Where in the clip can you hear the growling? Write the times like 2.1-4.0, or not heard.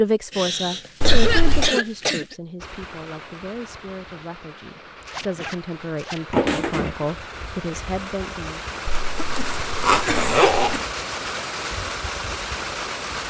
not heard.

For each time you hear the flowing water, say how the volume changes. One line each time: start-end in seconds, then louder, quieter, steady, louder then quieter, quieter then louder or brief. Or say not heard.
2.5-13.2 louder.